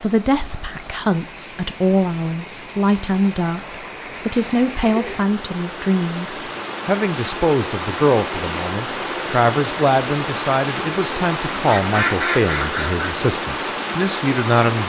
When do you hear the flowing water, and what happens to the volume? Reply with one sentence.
The flowing water can be heard from 0.0 to 14.8 s, getting louder.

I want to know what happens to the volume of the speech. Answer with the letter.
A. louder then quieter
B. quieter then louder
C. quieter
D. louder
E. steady
E.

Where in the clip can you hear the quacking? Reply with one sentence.
The quacking can be heard from 11.7 to 13.1 s.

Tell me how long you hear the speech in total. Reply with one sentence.
You can hear the speech for 15 seconds altogether.